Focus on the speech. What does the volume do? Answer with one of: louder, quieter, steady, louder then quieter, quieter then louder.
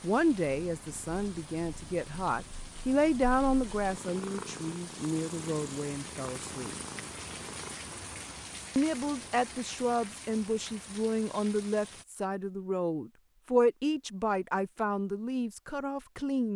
steady.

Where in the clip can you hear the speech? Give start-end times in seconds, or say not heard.
0.0-6.8, 8.8-16.5.